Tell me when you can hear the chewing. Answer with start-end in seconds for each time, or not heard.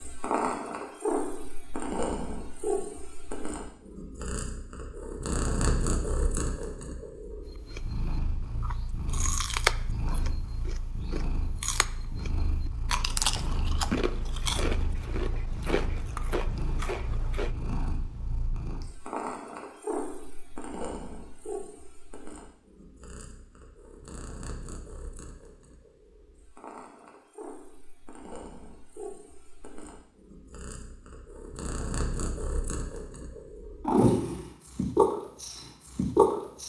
7.5-17.5.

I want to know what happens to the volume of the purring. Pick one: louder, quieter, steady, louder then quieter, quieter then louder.
quieter then louder.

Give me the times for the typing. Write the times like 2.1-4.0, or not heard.
not heard.